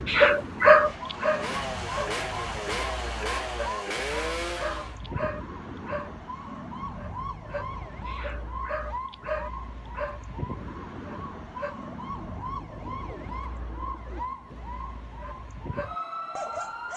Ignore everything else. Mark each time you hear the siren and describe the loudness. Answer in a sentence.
The siren can be heard from 0.0 to 16.9 s, at a steady volume.